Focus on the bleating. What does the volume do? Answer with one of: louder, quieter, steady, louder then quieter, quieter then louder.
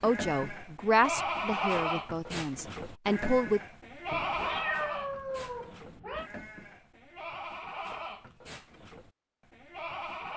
quieter.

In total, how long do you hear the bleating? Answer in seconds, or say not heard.
10 s.